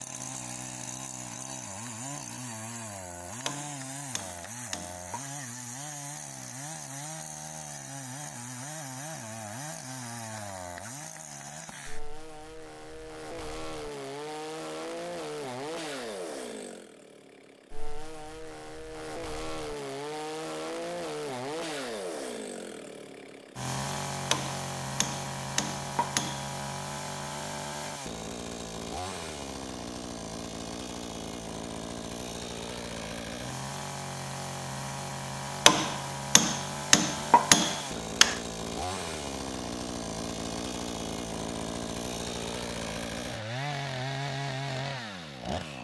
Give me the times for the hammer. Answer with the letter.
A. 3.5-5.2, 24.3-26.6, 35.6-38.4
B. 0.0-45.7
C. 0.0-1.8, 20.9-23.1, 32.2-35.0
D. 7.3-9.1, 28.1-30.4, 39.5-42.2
A.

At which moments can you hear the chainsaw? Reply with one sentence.
The chainsaw can be heard from 0.0 to 45.7 s.